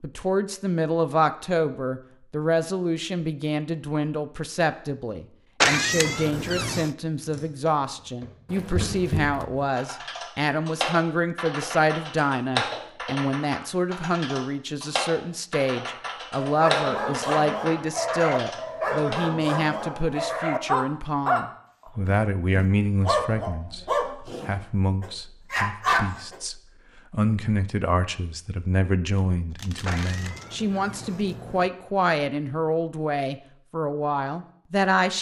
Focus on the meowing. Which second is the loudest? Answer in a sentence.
The loudest moment of the meowing is at 6 seconds.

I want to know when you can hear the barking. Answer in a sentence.
The barking can be heard from 16.4 to 21.4 s and from 22.1 to 26.4 s.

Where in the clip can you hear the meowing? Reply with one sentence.
The meowing can be heard from 5.6 to 6.9 s and from 29.9 to 31.7 s.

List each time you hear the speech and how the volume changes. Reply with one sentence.
You can hear the speech from 0.0 to 35.1 s, at a steady volume.